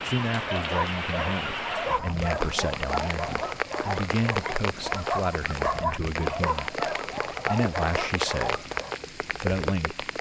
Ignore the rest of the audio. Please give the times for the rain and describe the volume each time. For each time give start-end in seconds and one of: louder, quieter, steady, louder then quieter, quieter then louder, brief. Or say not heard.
0.0-10.1 steady.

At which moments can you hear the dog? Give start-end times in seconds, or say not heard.
0.3-8.9.